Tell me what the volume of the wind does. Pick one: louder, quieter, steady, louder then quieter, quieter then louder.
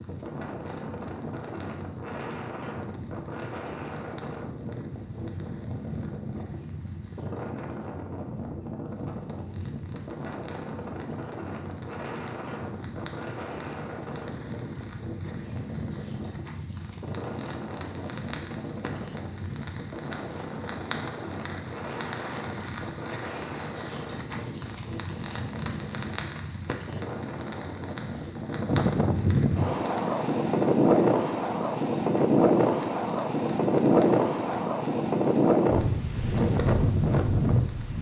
louder.